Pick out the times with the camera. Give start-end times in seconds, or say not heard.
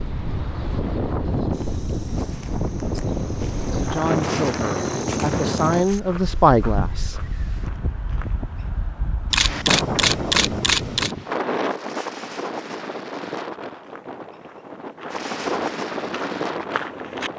3.0-3.9, 9.3-11.2.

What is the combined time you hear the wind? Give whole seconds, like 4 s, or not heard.
17 s.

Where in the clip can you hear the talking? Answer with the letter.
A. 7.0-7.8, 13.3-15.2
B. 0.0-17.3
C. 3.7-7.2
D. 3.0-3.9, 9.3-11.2
C.